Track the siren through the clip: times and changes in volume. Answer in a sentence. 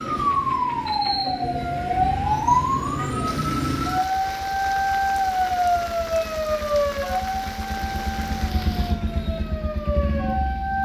You can hear the siren from 0.0 to 10.7 s, getting quieter.